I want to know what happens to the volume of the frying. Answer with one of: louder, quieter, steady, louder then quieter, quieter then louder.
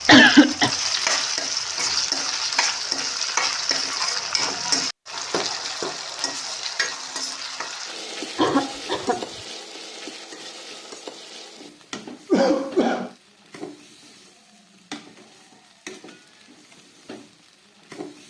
quieter.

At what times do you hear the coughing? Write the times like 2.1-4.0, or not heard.
0.1-0.7, 8.3-9.2, 12.3-13.1.